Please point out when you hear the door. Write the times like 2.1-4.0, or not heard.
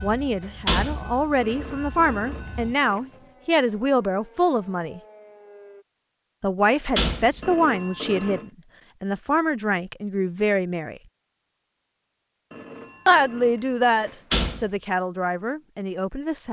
0.4-1.2, 6.7-7.5, 14.1-14.7.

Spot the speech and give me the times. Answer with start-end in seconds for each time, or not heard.
0.0-5.0, 6.4-11.0, 13.1-16.4.